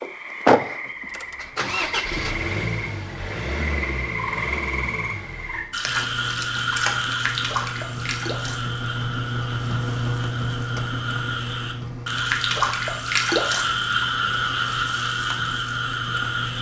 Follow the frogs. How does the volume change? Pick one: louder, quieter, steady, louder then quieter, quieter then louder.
louder.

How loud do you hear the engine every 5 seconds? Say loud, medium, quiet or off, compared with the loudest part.
loud, medium, medium, medium.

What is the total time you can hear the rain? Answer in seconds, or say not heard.
not heard.